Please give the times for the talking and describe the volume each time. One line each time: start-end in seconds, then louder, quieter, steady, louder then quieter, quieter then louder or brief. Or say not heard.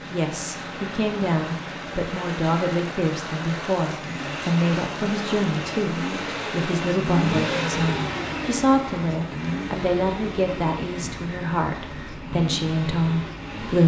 0.1-13.8 steady.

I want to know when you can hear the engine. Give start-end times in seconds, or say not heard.
0.0-13.8.